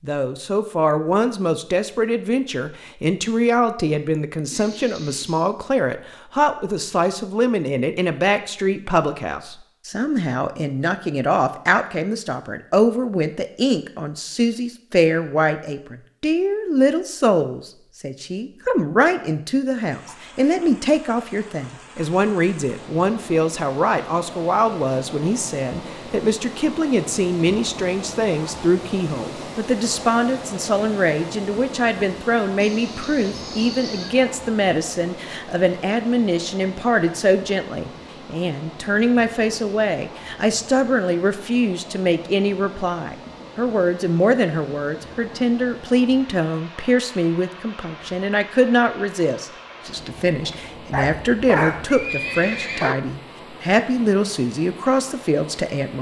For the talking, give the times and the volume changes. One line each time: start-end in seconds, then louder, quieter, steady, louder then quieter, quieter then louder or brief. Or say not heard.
0.0-55.9 steady.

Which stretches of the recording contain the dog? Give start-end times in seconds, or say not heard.
50.4-52.0.